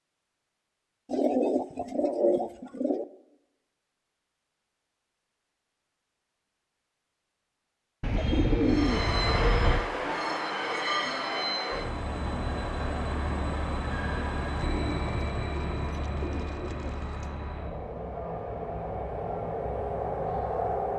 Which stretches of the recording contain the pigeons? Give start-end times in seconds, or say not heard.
1.1-3.0, 8.0-9.9, 14.6-17.3.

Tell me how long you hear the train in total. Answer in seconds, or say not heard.
12 s.